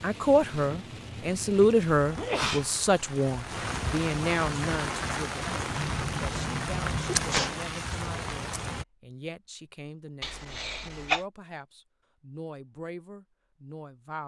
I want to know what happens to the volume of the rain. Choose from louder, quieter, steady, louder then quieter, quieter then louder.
louder.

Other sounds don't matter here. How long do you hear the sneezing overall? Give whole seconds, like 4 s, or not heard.
4 s.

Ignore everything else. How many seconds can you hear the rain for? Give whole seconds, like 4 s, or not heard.
9 s.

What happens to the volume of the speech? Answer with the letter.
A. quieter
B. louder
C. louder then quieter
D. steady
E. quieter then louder
A.